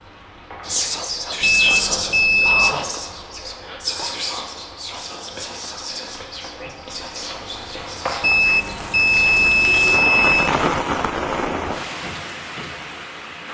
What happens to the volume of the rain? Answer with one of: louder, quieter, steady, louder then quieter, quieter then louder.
louder.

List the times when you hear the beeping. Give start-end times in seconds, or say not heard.
1.4-2.8, 8.2-10.5.